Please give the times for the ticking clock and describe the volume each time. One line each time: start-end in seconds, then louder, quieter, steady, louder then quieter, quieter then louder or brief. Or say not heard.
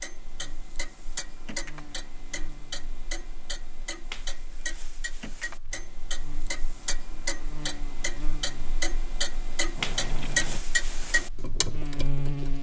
0.0-12.5 louder.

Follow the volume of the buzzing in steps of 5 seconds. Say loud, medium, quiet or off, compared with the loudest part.
quiet, quiet, loud.